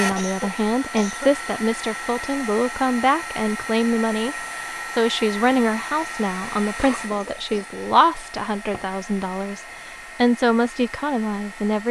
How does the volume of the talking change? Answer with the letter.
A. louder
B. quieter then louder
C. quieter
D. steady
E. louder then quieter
D.